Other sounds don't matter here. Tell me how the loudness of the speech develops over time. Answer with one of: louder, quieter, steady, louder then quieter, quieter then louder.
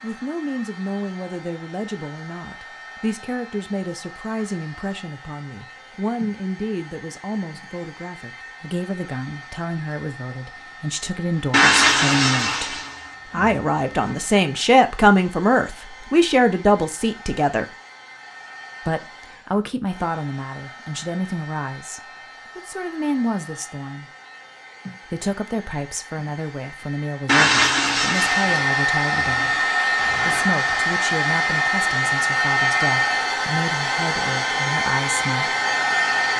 louder then quieter.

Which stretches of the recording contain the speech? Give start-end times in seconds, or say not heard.
0.0-17.6, 18.9-24.1, 25.1-35.5.